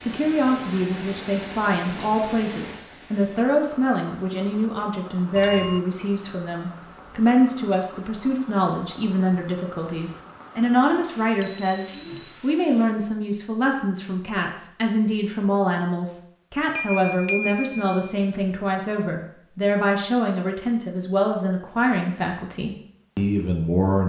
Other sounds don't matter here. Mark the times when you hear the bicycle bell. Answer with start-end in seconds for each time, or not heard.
5.3-5.8, 11.4-12.4, 16.8-18.1.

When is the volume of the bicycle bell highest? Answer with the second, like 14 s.
17 s.